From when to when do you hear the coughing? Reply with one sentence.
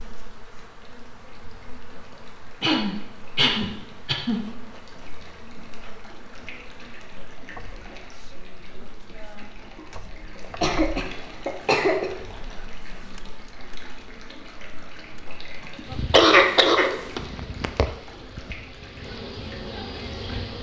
You can hear the coughing from 2.6 to 4.4 s, from 10.6 to 12.1 s and from 16.1 to 17.2 s.